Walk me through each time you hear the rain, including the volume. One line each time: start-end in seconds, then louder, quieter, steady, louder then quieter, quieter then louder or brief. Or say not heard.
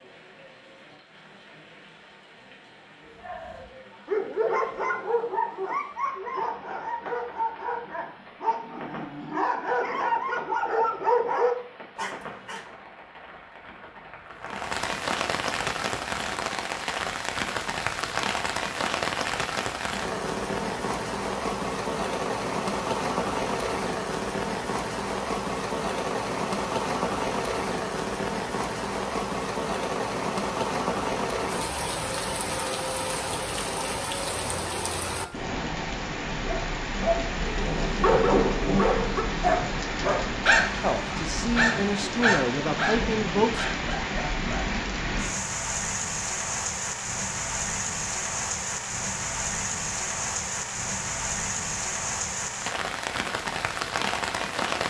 0.0-54.8 louder.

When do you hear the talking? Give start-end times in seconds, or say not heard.
40.8-43.7.